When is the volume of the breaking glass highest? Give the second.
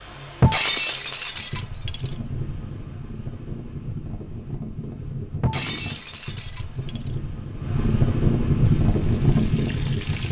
1 s.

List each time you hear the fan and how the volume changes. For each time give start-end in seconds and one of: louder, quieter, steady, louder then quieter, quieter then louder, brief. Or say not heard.
0.0-10.2 louder.